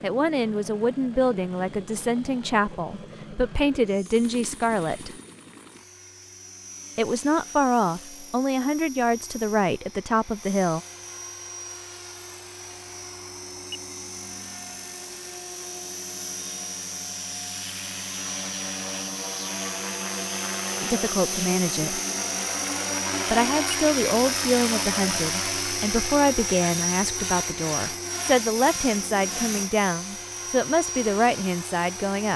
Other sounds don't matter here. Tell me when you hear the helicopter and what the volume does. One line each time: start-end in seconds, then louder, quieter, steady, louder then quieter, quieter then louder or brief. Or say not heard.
0.0-32.3 louder.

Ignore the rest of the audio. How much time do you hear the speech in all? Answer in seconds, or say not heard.
19 s.